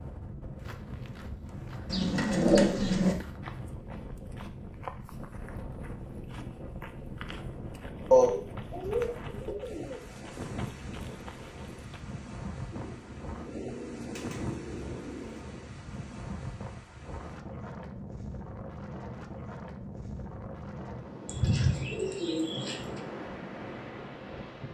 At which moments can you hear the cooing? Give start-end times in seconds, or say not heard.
1.9-3.1, 8.1-10.0, 12.7-15.5, 21.2-23.0.